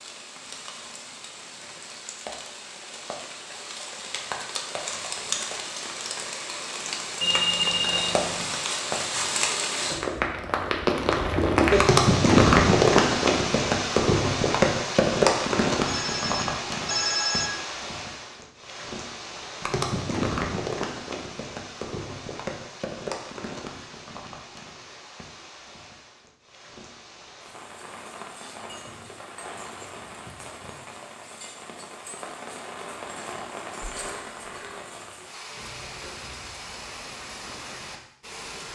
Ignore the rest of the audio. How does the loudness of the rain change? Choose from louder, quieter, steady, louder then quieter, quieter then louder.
louder then quieter.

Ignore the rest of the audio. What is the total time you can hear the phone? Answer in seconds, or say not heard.
4 s.